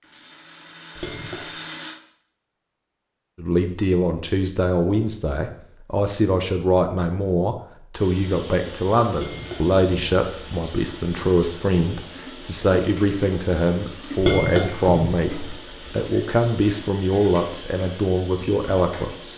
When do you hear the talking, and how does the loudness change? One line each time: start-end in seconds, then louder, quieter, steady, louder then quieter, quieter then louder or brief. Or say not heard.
3.4-19.3 steady.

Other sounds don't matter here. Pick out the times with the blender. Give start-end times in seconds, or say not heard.
0.0-2.0.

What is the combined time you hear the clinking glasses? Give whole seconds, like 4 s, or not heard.
3 s.